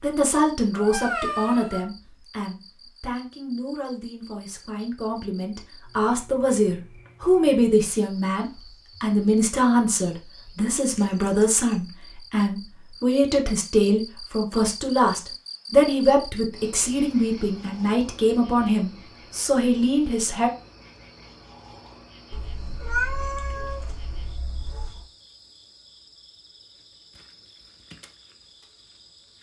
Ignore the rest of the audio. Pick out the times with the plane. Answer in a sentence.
You can't hear the plane here.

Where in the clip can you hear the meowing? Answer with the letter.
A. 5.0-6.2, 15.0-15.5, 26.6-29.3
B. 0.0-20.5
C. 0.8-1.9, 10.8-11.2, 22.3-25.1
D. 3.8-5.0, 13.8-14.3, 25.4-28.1
C.